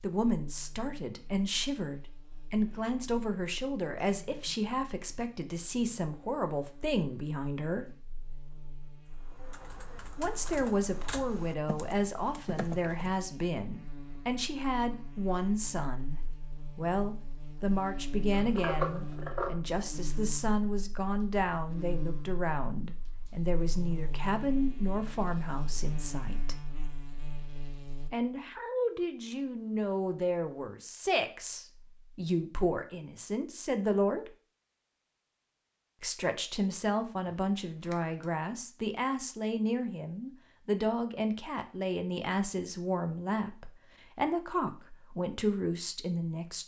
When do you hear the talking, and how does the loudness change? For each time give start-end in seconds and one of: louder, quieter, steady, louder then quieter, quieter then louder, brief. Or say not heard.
0.0-8.0 steady
10.2-26.6 steady
28.1-34.3 steady
36.0-46.6 steady.